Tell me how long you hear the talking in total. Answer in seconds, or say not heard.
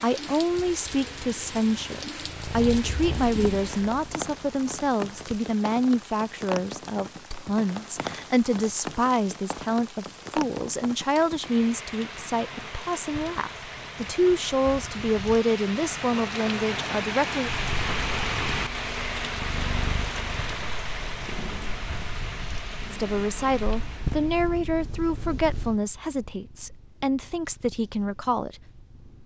23 s.